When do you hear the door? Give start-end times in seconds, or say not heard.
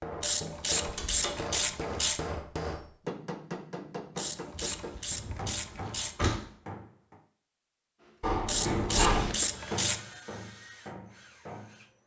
0.8-1.5, 4.5-6.4, 8.2-9.3.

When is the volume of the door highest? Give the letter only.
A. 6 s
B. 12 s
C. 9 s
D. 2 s
C.